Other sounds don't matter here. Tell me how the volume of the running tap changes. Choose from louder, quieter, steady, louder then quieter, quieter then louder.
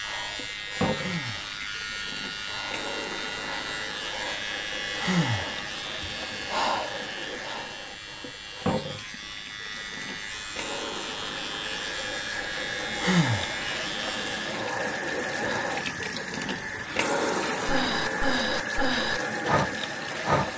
louder.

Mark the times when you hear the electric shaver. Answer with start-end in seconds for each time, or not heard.
0.0-14.6.